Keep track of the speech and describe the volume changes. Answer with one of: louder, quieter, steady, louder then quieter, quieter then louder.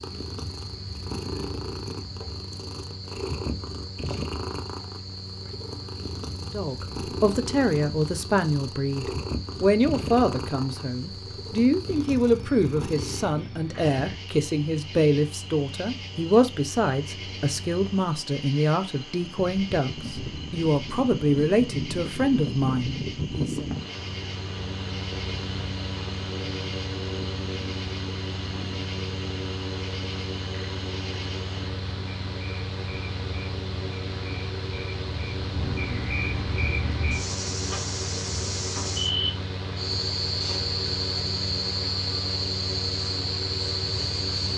steady.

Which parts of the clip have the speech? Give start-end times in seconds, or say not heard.
6.5-23.6.